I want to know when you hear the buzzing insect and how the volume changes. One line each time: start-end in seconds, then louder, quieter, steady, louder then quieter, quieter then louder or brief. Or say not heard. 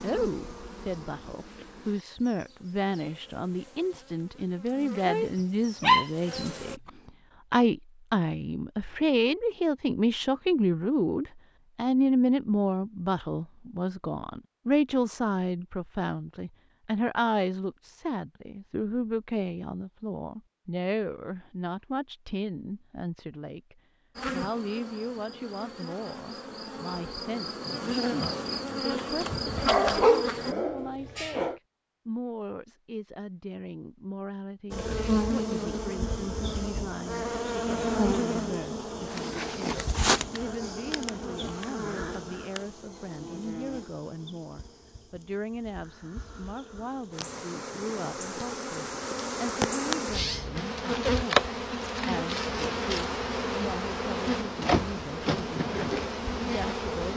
0.0-6.8 quieter then louder
24.1-30.6 louder
34.7-57.1 quieter then louder.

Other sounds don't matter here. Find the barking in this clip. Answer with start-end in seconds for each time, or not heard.
5.3-6.5, 29.6-31.6.